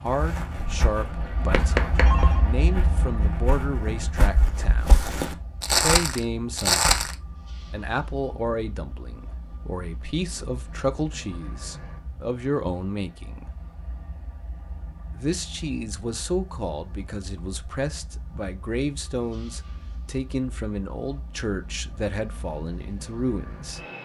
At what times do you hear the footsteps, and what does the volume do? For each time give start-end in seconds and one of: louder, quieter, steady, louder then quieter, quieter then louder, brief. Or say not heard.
0.1-7.2 louder.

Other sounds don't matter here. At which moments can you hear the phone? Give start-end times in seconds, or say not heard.
1.5-2.4.